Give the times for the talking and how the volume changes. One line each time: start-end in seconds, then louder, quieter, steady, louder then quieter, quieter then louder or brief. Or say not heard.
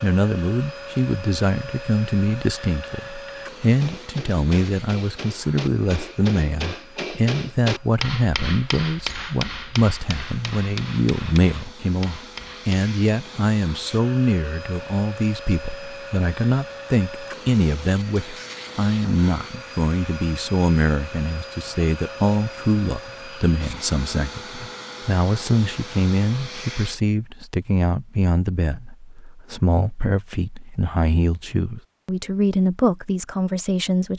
0.0-34.1 steady.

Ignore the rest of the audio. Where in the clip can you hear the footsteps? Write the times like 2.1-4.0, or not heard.
not heard.